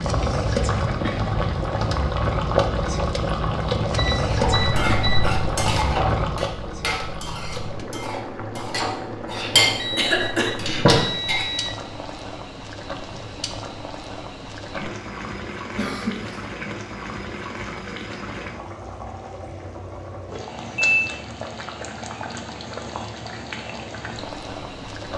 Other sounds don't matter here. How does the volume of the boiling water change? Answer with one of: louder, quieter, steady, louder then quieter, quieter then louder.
quieter.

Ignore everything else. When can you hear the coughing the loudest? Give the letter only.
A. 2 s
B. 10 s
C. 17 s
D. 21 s
B.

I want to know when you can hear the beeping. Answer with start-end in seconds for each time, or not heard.
4.0-5.3, 9.8-11.8, 20.6-21.0.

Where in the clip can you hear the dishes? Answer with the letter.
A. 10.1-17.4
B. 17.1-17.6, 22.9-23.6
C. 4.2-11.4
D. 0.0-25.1
C.